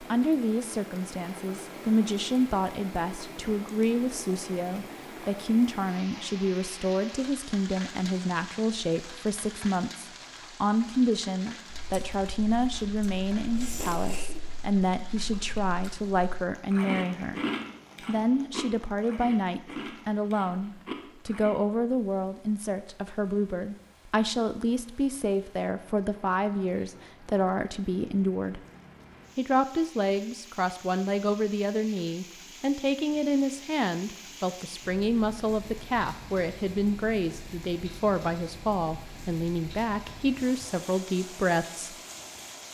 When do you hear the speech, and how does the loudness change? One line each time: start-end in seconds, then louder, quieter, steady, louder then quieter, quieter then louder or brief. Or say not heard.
0.0-17.4 steady
18.1-28.6 steady
29.4-42.0 steady.